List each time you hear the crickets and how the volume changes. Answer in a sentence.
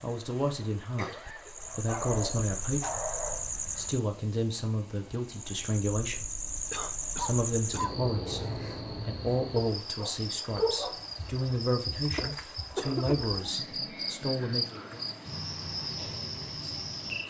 The crickets can be heard from 0.0 to 17.2 s, at a steady volume.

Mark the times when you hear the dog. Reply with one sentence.
You can hear the dog from 1.6 to 3.5 s and from 9.6 to 11.1 s.